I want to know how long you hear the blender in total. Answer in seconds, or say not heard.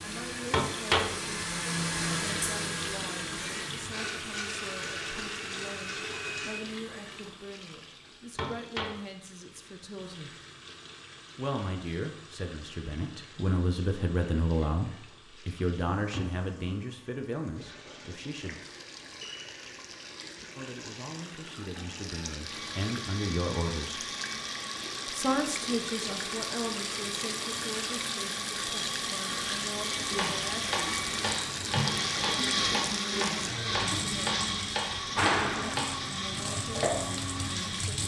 22 s.